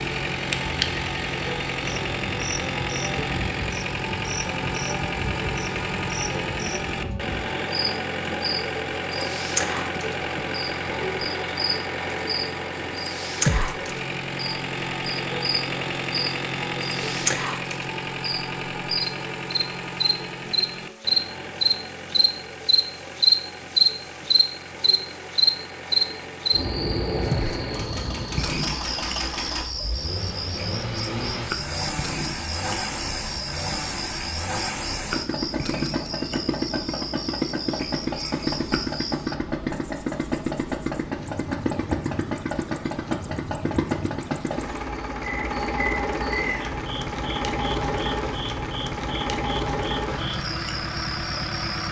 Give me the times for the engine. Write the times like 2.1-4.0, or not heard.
0.0-51.8.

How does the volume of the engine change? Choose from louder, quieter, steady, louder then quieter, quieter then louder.
quieter then louder.